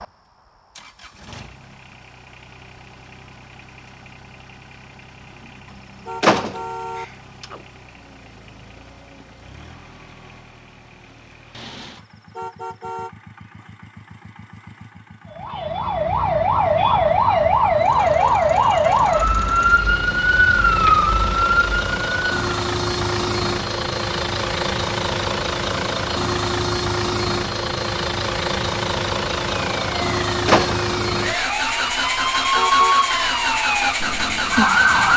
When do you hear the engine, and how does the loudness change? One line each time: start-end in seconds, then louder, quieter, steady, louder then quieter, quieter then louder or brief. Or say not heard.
0.0-35.1 louder.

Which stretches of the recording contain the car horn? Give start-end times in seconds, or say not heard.
5.8-7.0, 11.9-13.1, 32.4-33.0.